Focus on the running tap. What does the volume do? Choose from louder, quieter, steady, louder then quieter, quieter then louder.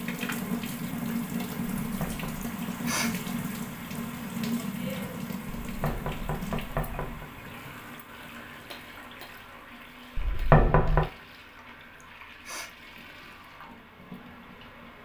quieter.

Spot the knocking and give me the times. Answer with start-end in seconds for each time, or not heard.
1.9-2.5, 5.7-7.2, 10.2-11.1.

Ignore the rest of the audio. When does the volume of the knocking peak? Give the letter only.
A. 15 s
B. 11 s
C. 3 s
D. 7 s
B.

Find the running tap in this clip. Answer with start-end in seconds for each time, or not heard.
0.0-15.0.